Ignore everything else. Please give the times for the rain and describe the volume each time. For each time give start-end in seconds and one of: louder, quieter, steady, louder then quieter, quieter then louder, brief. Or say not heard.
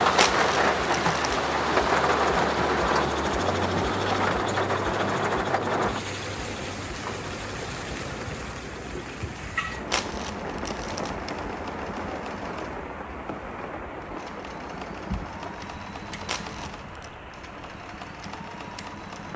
0.0-19.3 quieter.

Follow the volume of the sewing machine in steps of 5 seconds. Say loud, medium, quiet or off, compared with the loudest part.
loud, medium, medium, medium.